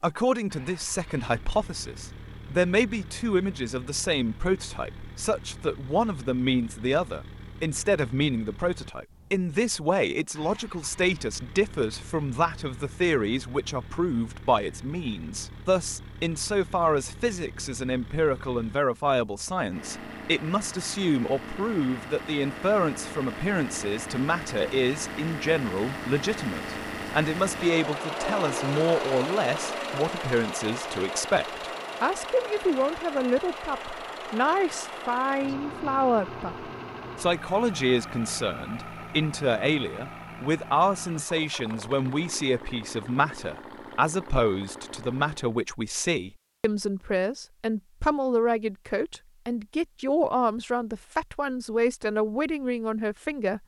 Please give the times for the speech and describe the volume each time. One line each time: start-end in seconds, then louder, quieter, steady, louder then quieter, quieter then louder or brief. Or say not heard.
0.0-53.6 steady.